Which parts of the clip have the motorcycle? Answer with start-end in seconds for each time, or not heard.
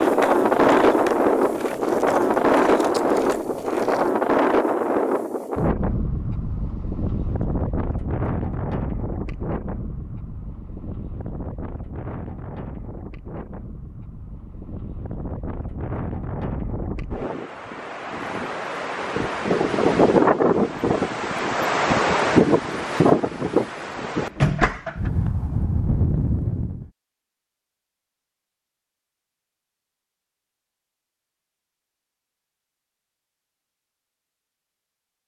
not heard.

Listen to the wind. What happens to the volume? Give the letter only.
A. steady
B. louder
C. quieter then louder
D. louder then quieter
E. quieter
C.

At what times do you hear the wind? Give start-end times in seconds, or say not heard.
0.0-26.9.